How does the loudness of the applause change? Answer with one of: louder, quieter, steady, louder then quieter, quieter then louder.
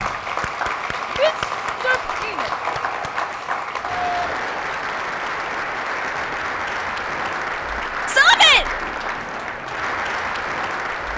steady.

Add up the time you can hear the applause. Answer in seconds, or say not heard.
11 s.